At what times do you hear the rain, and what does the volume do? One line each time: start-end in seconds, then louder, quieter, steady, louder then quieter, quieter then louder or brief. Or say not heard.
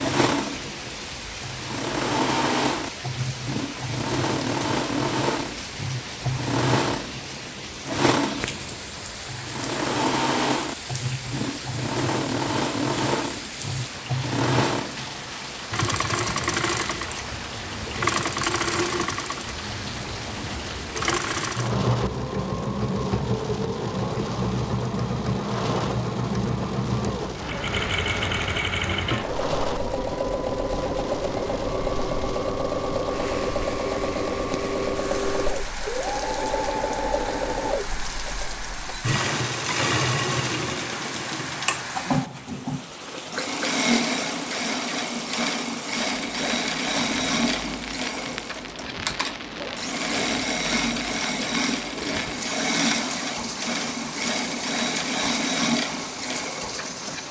0.2-57.2 steady.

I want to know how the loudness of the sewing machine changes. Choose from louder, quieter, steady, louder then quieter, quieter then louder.
steady.